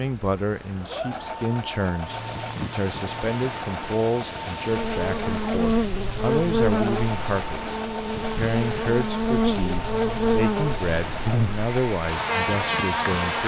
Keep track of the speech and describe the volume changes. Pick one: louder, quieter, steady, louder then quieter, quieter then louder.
steady.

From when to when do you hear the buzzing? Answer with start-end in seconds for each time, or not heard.
4.7-13.4.